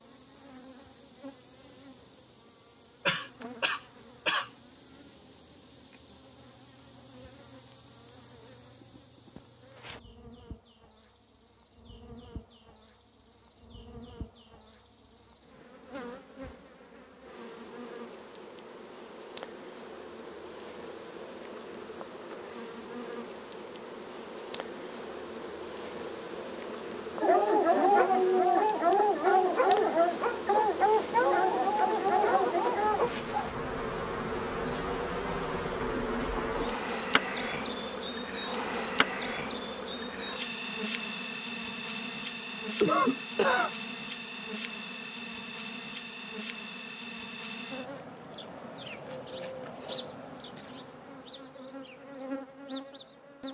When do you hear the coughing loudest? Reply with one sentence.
The volume of the coughing peaks at 43 seconds.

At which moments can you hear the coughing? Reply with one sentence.
You can hear the coughing from 3.0 to 4.5 s and from 42.8 to 43.7 s.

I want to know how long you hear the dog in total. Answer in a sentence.
The dog can be heard for 6 seconds in total.